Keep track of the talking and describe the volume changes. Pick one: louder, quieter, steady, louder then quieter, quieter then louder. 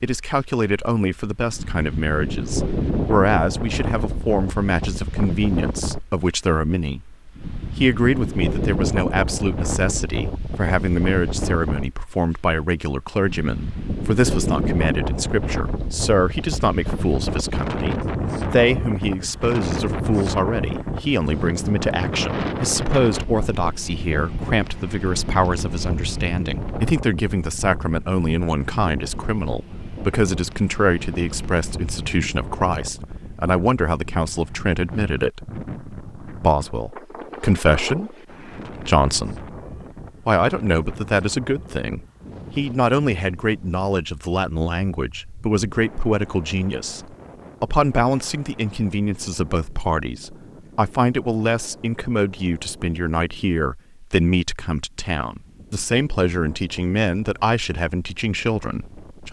steady.